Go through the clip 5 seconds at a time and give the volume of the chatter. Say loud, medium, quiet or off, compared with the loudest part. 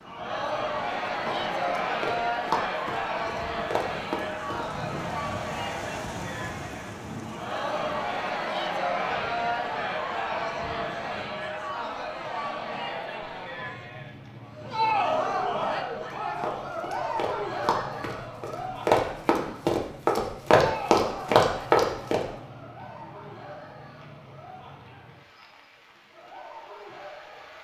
loud, loud, loud, loud, medium, quiet.